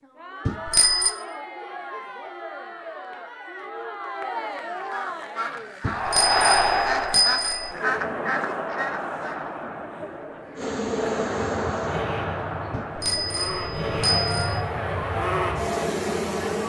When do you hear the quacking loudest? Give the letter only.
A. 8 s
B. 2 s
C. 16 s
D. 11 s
A.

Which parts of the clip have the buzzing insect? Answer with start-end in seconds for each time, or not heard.
10.6-16.6.